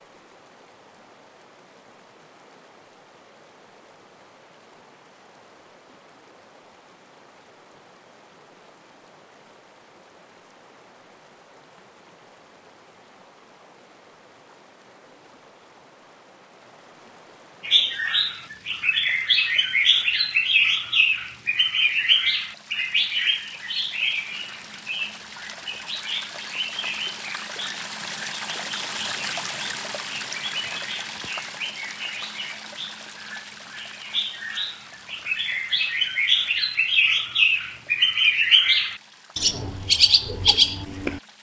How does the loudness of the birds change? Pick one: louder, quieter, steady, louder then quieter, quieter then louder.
quieter then louder.